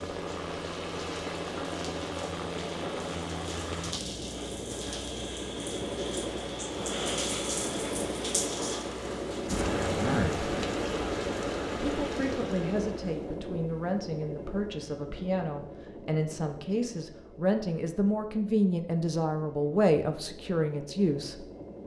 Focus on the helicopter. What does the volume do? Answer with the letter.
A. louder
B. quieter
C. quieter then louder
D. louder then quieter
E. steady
B.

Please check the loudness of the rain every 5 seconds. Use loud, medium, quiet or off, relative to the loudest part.
medium, loud, loud, off, off.